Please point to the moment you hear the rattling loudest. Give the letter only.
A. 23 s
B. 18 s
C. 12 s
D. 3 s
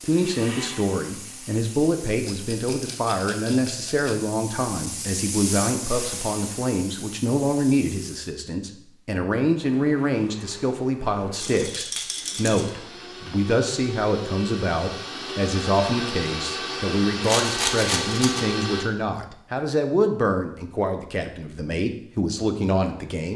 B.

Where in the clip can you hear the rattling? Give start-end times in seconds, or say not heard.
2.2-4.2, 11.3-12.7, 17.2-18.4.